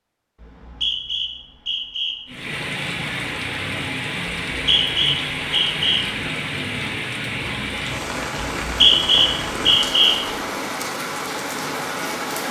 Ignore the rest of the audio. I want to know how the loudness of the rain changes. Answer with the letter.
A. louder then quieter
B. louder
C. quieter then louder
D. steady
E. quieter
D.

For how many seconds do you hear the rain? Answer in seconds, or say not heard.
10 s.